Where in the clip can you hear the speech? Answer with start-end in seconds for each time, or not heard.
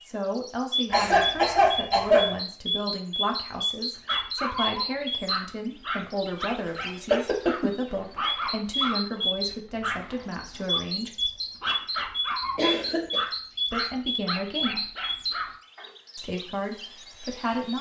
0.0-11.1, 13.7-14.9, 16.1-17.7.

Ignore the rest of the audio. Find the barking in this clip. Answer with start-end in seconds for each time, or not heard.
4.0-15.9.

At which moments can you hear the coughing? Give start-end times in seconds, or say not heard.
0.9-2.4, 6.7-7.7, 12.4-13.2.